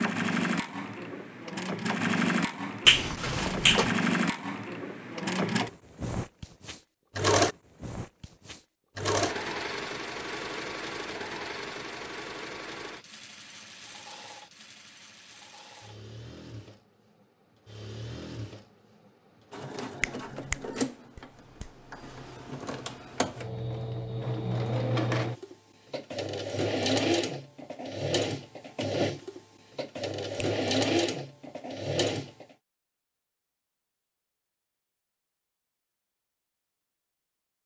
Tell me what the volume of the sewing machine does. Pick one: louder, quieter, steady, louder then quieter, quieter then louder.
quieter then louder.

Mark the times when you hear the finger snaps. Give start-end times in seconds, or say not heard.
2.9-4.0, 20.0-20.6, 21.1-21.7.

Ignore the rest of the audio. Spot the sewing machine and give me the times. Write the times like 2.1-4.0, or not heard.
0.0-32.5.